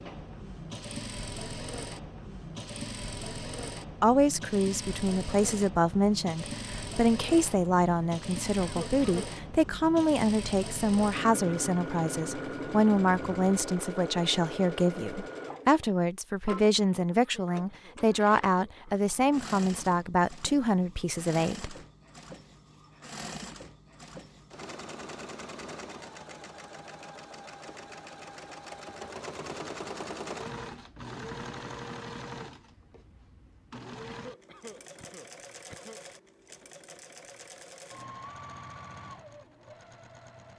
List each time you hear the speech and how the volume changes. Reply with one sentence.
The speech can be heard from 4.0 to 21.8 s, at a steady volume.